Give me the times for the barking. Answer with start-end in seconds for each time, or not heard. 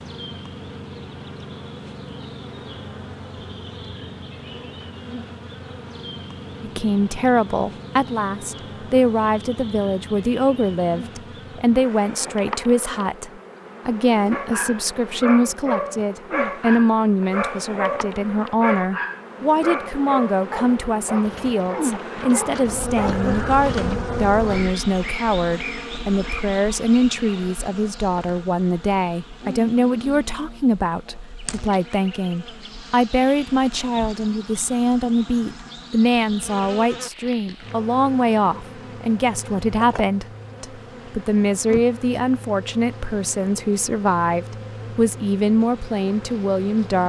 14.3-24.0.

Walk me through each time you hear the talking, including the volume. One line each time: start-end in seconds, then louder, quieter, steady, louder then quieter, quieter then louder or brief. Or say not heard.
6.6-47.0 steady.